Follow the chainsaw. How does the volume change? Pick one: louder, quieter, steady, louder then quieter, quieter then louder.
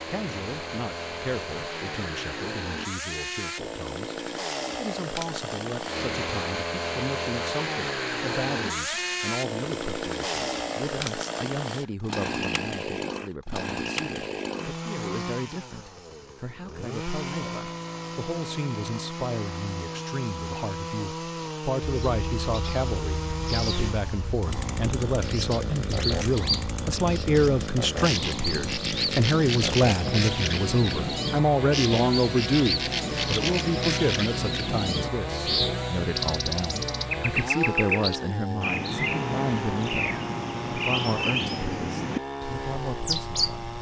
steady.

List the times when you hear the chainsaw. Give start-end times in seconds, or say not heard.
0.0-43.7.